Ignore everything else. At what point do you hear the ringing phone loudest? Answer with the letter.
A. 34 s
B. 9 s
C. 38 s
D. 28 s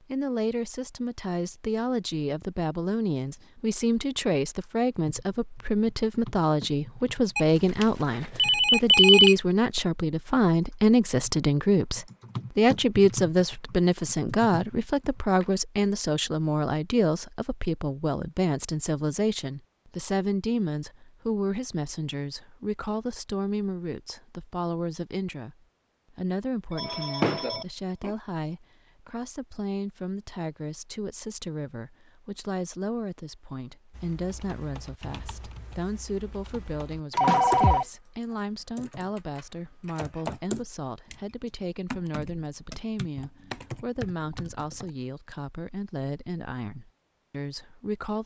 B.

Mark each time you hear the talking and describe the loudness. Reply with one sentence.
You can hear the talking from 0.1 to 48.2 s, getting quieter.